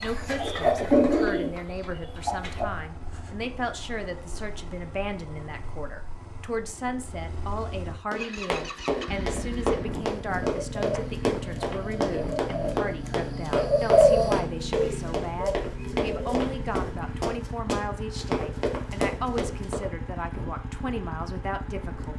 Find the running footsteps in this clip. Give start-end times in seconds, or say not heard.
8.1-19.9.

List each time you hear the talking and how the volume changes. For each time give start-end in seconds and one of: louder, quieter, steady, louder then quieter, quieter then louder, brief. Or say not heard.
0.0-22.1 steady.